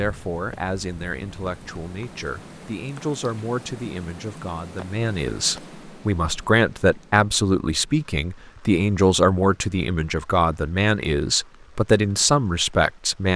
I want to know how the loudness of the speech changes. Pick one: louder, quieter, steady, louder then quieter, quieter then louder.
louder.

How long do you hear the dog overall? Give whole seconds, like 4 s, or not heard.
not heard.